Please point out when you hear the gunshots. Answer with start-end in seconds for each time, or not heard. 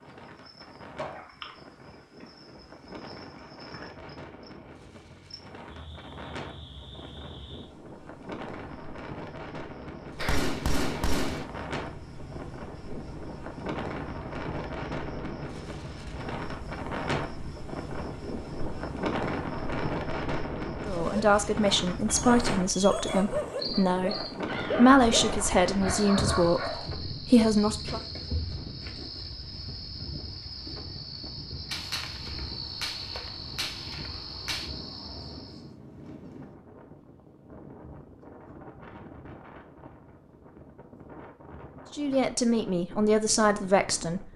10.2-11.4, 31.7-34.7.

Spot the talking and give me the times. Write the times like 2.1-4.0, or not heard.
20.9-28.0, 41.9-44.3.